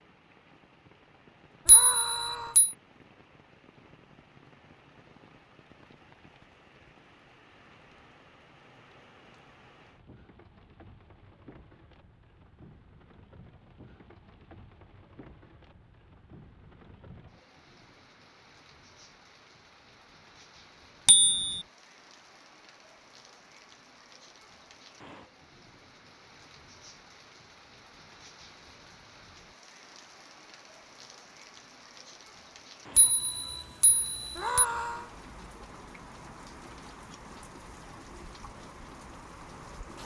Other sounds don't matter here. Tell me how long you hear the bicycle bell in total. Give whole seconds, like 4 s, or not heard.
3 s.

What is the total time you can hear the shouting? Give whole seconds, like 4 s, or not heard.
2 s.